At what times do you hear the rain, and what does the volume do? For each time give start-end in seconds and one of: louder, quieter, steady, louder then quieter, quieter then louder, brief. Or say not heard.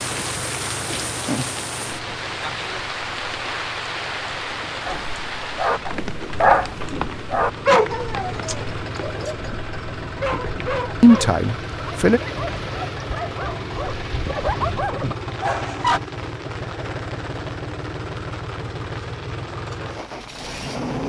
0.0-21.0 quieter.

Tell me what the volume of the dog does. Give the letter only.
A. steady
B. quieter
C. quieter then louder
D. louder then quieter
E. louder
C.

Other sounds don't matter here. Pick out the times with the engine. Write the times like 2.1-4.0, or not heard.
0.0-21.0.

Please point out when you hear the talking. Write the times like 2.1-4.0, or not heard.
11.0-12.2.